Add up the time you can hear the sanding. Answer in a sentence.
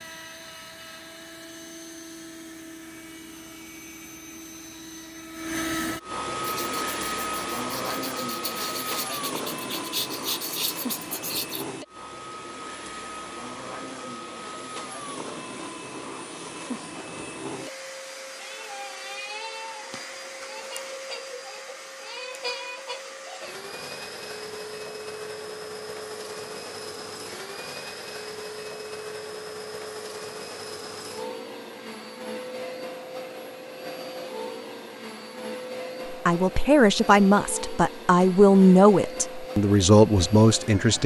You can hear the sanding for 5 seconds altogether.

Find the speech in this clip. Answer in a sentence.
The speech can be heard from 36.0 to 41.0 s.